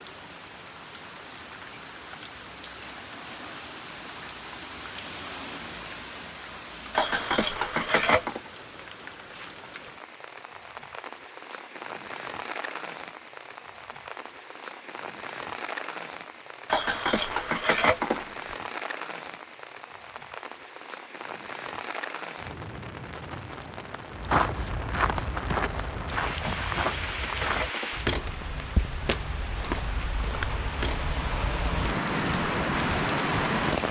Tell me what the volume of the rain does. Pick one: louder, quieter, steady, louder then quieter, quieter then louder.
louder.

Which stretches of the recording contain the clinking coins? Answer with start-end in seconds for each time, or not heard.
7.0-8.4, 16.7-18.2, 26.4-28.0.